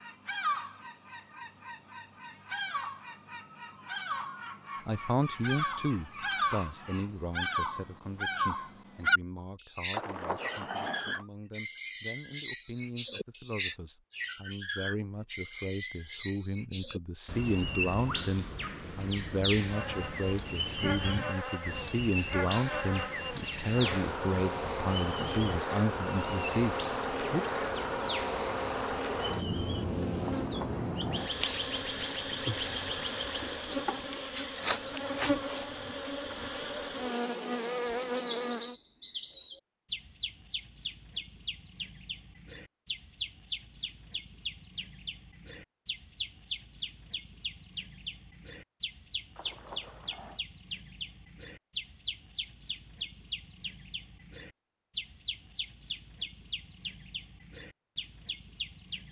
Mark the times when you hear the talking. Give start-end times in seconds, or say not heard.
4.8-27.5.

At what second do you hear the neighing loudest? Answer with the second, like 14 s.
10 s.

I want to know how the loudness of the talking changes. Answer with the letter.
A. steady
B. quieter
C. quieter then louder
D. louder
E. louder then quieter
C.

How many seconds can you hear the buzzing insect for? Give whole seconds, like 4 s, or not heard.
19 s.